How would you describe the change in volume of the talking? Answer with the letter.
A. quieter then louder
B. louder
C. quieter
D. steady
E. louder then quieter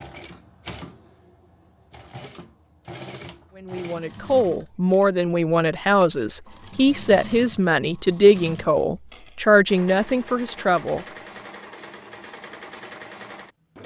D.